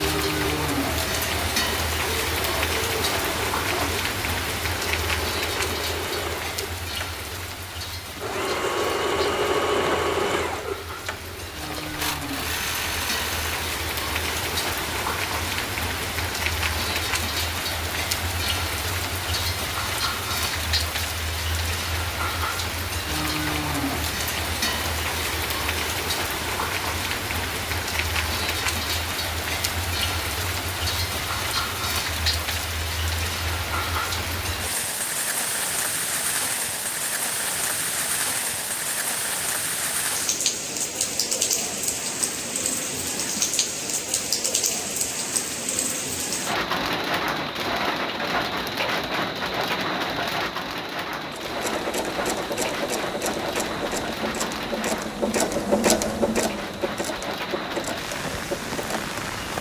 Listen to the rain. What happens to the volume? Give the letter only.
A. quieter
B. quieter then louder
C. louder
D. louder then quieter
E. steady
E.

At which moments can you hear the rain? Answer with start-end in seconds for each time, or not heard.
0.0-59.5.